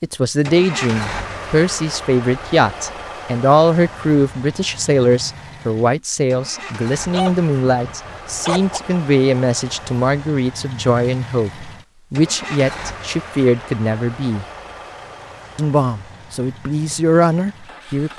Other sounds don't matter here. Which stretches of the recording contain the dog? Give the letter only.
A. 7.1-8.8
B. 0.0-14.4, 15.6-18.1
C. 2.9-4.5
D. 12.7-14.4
A.